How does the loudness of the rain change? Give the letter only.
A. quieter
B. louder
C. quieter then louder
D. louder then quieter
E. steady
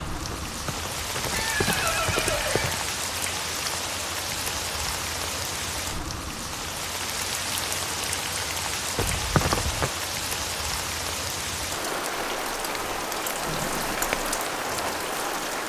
E.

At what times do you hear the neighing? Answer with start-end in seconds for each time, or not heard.
0.3-2.9, 8.9-9.9.